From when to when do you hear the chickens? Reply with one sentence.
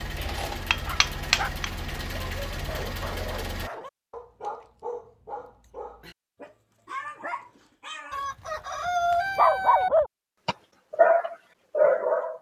The chickens can be heard from 8.1 to 9.9 s.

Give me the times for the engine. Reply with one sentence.
You can hear the engine from 0.0 to 3.7 s.